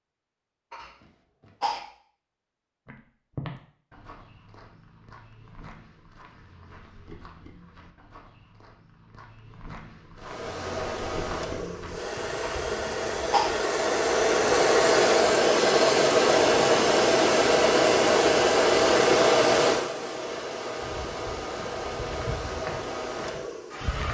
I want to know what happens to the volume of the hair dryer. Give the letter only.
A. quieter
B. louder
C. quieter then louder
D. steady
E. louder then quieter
E.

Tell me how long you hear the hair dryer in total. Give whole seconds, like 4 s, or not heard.
14 s.